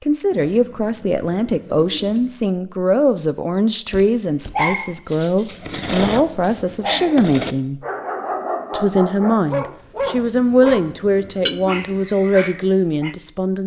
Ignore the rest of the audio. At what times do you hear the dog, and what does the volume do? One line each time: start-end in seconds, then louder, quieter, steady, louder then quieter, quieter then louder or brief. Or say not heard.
3.9-13.2 steady.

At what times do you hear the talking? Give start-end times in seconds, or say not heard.
0.0-7.8, 8.7-13.6.